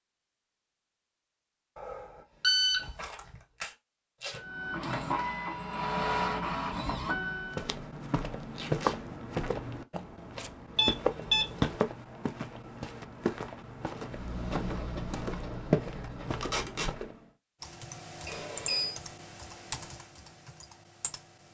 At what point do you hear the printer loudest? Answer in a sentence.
The volume of the printer peaks at 6 seconds.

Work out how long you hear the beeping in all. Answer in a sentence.
You can hear the beeping for 4 seconds altogether.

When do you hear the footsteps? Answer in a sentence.
The footsteps can be heard from 7.5 to 17.1 s.